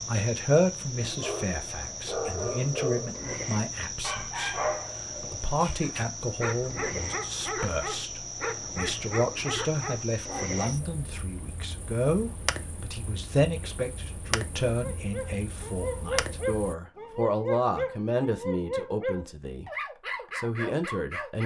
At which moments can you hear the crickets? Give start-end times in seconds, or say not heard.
0.0-16.8.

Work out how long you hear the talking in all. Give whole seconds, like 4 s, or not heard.
21 s.